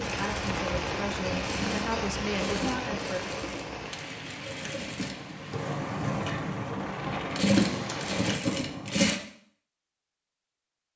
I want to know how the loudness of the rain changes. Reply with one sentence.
The loudness of the rain goes down, then up.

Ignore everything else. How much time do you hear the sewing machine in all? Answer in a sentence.
The sewing machine can be heard for 9 seconds in total.